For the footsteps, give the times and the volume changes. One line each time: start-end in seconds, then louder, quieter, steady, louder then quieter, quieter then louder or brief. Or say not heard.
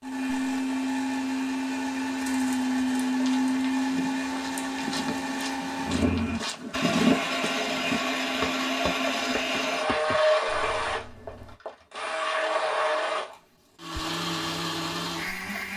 3.1-11.6 louder then quieter.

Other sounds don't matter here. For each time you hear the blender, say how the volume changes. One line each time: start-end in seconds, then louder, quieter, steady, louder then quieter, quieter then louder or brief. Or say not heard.
0.0-15.7 steady.